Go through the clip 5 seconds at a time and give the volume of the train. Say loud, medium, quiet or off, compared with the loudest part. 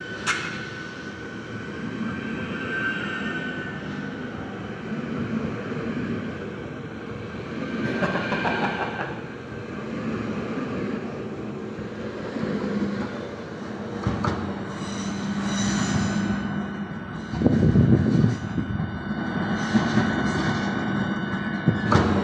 medium, medium, medium, loud, loud.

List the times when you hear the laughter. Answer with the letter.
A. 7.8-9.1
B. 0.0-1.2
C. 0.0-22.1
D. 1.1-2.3
A.